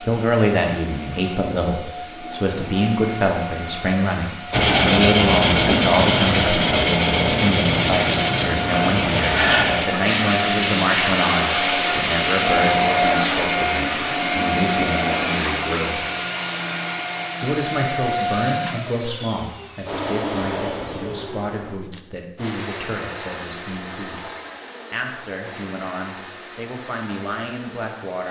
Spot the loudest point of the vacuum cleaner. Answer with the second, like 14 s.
13 s.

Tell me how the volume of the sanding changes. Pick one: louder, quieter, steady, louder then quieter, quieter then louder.
quieter.